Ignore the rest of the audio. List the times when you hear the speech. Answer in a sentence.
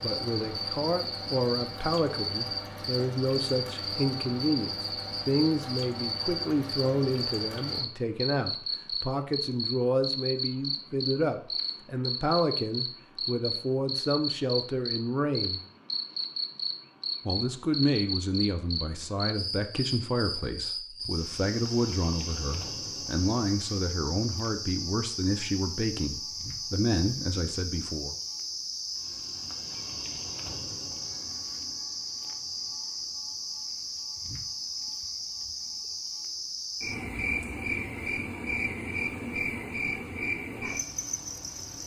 The speech can be heard from 0.0 to 15.6 s and from 17.2 to 28.1 s.